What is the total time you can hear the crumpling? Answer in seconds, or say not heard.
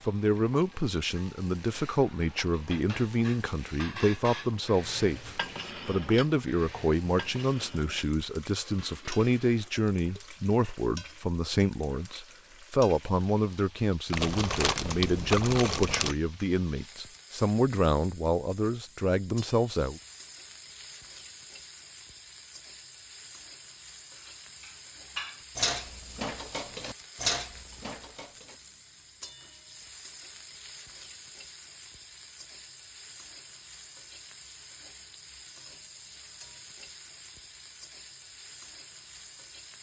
2 s.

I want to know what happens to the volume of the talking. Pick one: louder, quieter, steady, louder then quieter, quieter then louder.
steady.